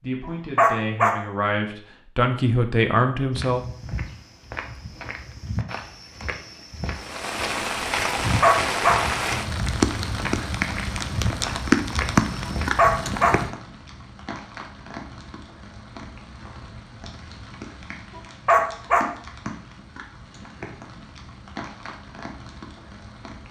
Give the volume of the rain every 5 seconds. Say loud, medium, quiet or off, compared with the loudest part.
off, loud, loud, quiet, quiet.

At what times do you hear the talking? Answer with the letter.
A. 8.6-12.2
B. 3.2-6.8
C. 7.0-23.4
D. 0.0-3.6
D.